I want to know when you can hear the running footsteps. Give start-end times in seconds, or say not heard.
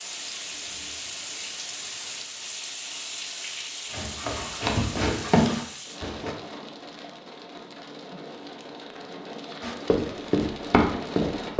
3.9-6.3, 9.6-11.5.